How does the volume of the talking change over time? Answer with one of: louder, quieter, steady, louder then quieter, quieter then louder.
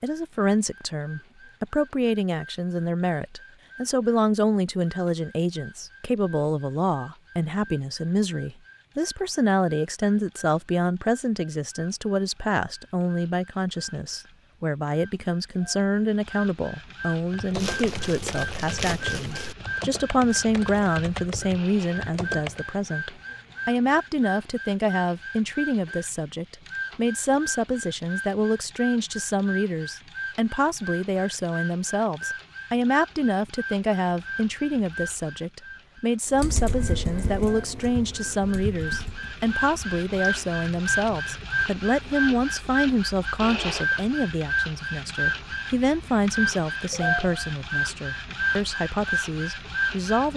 steady.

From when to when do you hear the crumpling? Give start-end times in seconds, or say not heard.
17.5-19.6.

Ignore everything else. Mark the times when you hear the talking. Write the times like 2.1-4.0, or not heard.
0.0-50.3.